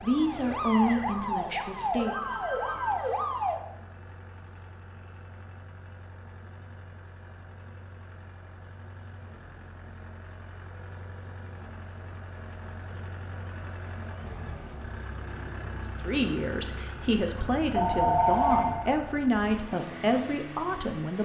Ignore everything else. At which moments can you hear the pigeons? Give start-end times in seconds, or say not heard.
not heard.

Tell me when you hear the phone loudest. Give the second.
18 s.